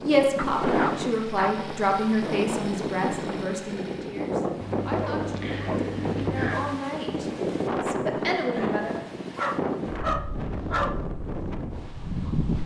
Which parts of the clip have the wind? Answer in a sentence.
The wind can be heard from 0.0 to 12.6 s.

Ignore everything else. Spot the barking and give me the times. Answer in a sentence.
You can hear the barking from 0.3 to 1.6 s, from 4.6 to 6.8 s and from 9.3 to 11.0 s.